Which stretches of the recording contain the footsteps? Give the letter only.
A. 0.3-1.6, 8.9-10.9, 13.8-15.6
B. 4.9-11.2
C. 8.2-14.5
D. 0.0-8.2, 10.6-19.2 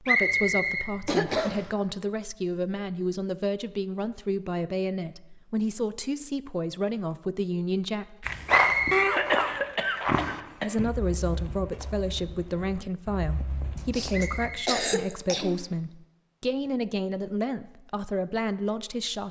C.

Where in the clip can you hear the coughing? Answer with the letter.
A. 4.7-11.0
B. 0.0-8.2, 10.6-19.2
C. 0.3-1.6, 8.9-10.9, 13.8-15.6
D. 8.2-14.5
C.